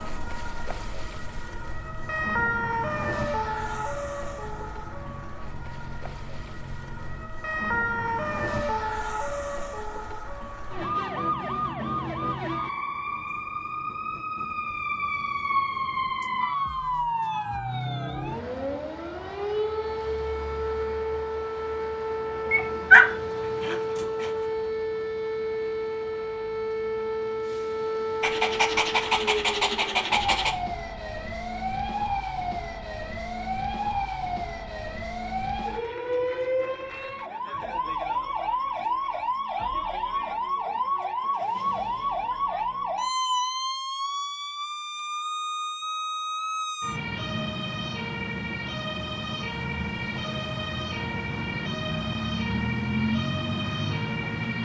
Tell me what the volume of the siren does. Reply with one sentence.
The volume of the siren stays about the same.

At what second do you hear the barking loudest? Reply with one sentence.
The loudest moment of the barking is at 23 seconds.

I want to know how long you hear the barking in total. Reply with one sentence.
You can hear the barking for 4 seconds altogether.